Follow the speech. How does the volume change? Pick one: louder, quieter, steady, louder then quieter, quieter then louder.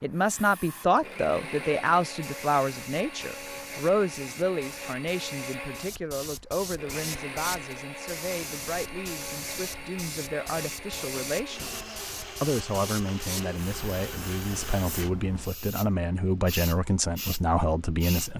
quieter then louder.